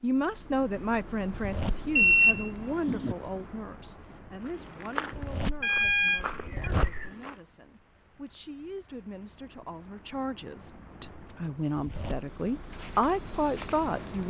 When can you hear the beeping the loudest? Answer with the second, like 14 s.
2 s.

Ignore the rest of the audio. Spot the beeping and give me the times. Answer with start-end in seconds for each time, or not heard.
1.9-3.1, 5.6-6.7, 11.4-12.2.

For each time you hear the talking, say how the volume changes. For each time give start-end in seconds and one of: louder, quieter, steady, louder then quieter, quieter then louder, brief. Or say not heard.
0.0-14.2 quieter then louder.